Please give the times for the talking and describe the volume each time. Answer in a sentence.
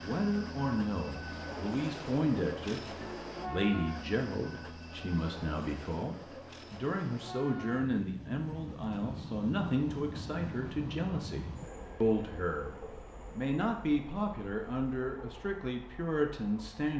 The talking can be heard from 0.0 to 16.9 s, at a steady volume.